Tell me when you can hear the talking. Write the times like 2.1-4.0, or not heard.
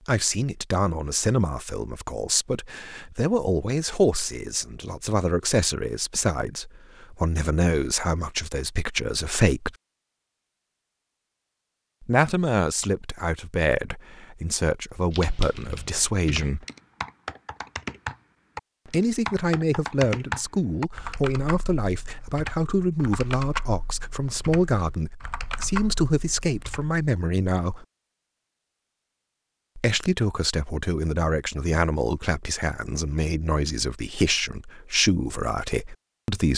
0.1-9.7, 12.0-16.6, 18.9-27.9, 29.8-36.5.